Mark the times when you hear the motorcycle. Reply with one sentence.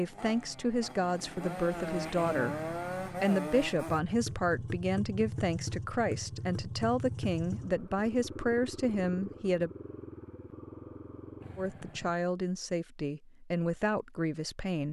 The motorcycle can be heard from 0.0 to 12.1 s.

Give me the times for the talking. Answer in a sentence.
You can hear the talking from 0.0 to 9.7 s and from 11.6 to 14.8 s.